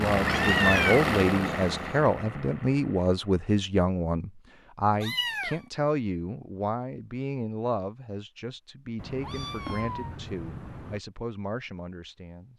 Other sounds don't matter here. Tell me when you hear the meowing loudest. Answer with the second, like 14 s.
1 s.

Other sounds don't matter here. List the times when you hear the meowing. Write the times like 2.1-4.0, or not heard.
0.1-2.0, 5.0-5.6, 8.9-11.0.